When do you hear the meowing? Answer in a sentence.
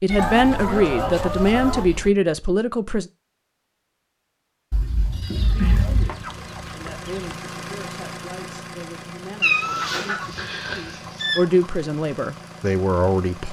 You can hear the meowing from 0.1 to 2.1 s, from 4.7 to 6.2 s and from 9.4 to 11.4 s.